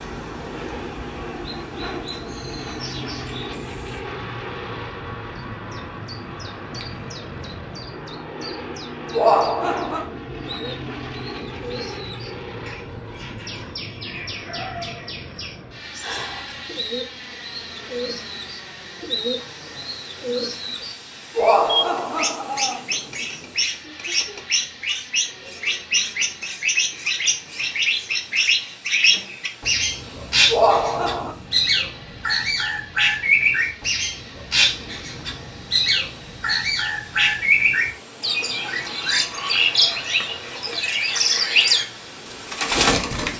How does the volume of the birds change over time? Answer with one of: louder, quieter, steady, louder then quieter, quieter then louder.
louder.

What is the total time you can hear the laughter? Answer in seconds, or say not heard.
3 s.